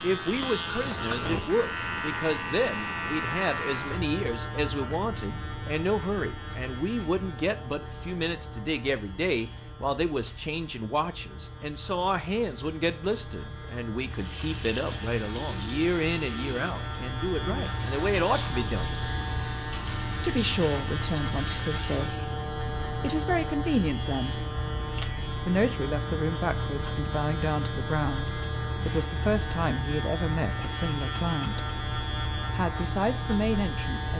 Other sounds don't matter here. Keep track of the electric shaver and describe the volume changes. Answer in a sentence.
The loudness of the electric shaver goes down, then up.